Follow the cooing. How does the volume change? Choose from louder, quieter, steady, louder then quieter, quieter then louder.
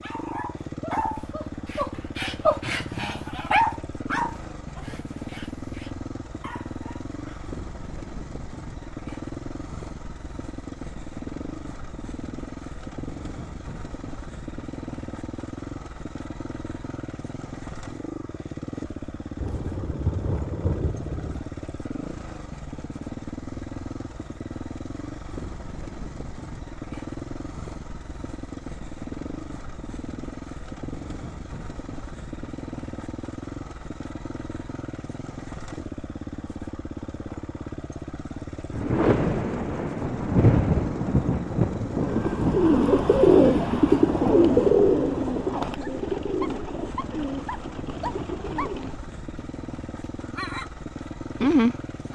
quieter.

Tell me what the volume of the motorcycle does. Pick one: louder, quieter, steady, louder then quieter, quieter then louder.
steady.